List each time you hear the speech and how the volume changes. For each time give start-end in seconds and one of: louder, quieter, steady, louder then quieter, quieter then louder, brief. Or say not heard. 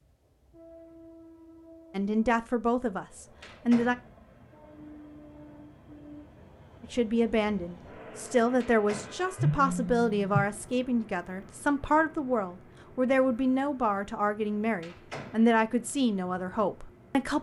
1.9-4.0 brief
6.8-17.3 steady.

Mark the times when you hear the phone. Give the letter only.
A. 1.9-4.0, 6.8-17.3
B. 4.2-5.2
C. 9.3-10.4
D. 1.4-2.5
C.